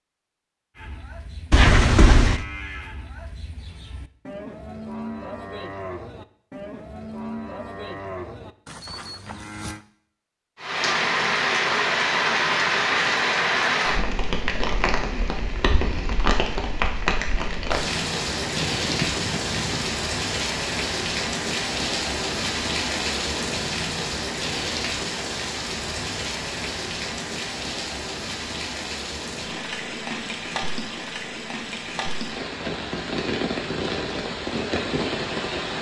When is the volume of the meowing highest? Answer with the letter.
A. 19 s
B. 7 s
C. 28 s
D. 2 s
D.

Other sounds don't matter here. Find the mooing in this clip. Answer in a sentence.
You can hear the mooing from 0.8 to 9.8 s.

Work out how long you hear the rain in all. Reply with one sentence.
You can hear the rain for 25 seconds altogether.